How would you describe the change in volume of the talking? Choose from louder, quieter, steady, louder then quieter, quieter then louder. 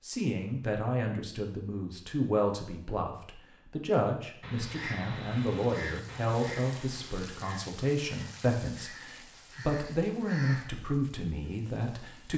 steady.